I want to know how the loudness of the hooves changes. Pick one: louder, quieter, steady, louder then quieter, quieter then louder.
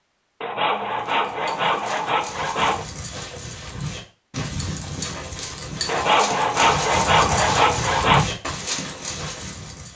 louder.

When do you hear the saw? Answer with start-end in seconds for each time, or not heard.
0.4-2.9, 5.8-8.2.